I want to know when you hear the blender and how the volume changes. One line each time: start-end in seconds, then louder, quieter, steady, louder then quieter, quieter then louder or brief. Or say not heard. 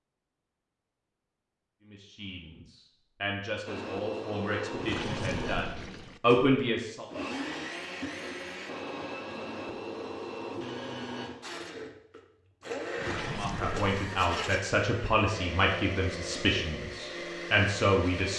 3.6-18.3 steady.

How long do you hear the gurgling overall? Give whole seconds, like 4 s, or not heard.
3 s.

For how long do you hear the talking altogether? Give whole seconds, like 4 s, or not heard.
10 s.